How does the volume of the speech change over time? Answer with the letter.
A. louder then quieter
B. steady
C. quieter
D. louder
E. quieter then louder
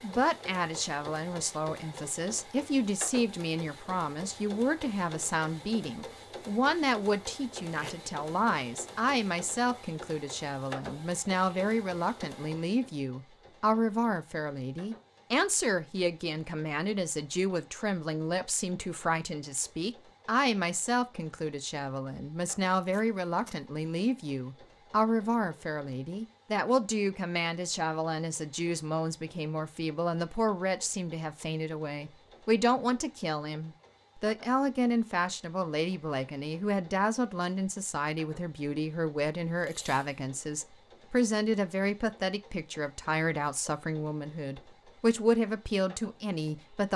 B.